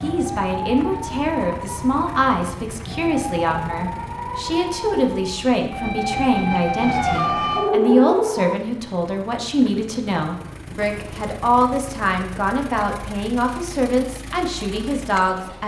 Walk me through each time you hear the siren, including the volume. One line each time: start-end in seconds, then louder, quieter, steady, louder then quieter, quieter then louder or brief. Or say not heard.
0.0-8.6 louder.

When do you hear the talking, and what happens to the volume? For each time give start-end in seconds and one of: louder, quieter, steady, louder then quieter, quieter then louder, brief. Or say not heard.
0.0-15.6 steady.